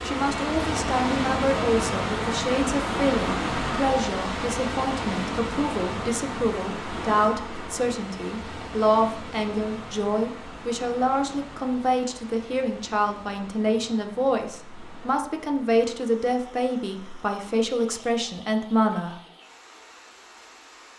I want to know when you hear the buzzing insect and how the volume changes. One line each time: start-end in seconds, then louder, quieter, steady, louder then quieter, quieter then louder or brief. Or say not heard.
not heard.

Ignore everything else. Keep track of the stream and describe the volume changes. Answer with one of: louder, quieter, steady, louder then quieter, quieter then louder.
quieter.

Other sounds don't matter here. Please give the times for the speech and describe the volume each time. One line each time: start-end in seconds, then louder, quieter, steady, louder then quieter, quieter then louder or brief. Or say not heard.
0.0-19.1 steady.